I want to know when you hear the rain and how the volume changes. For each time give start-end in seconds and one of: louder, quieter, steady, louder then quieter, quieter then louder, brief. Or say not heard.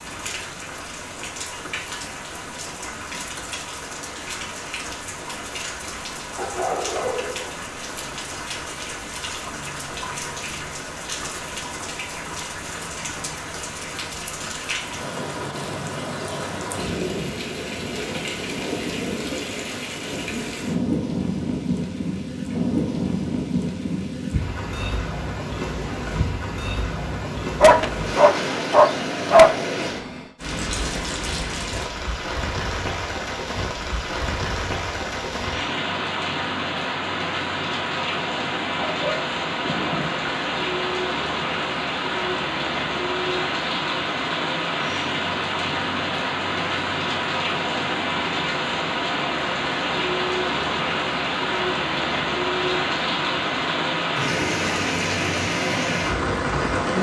0.0-56.9 louder.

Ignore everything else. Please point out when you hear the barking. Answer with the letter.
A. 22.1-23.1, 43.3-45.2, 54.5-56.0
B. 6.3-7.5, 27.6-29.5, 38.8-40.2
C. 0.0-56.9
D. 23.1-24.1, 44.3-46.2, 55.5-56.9
B.